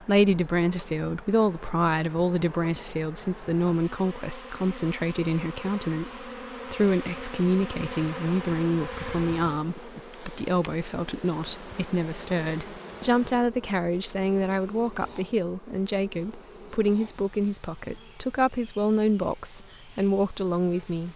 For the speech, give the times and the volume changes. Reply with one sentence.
The speech can be heard from 0.0 to 21.1 s, at a steady volume.